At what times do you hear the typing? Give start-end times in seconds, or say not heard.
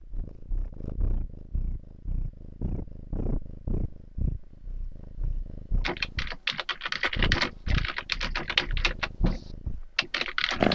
5.8-10.6.